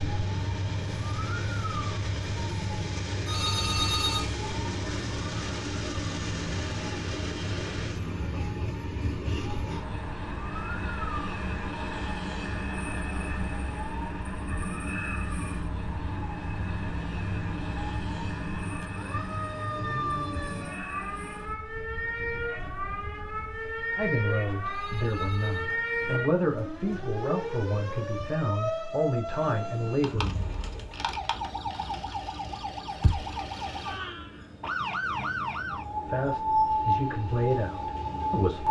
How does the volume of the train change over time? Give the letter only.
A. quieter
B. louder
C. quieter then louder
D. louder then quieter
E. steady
A.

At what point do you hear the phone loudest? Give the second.
4 s.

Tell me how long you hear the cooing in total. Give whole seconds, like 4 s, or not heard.
not heard.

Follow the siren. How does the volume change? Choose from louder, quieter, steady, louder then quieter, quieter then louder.
louder.